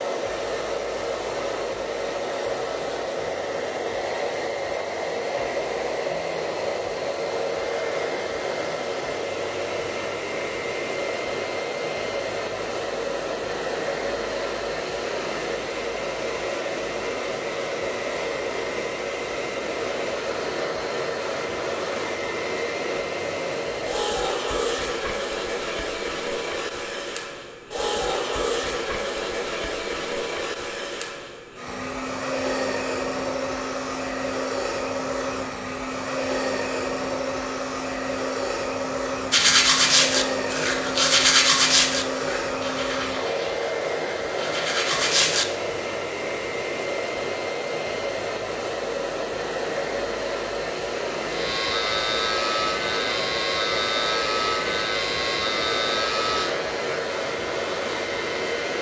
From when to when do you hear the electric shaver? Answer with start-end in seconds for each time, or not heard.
51.2-58.7.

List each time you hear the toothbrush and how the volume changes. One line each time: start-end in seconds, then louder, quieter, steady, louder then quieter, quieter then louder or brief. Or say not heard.
39.3-45.5 quieter then louder.